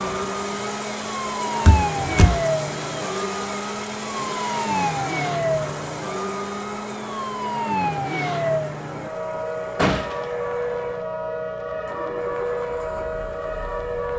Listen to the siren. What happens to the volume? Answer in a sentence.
The volume of the siren stays about the same.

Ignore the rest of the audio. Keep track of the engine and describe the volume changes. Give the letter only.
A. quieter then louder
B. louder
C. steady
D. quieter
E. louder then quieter
D.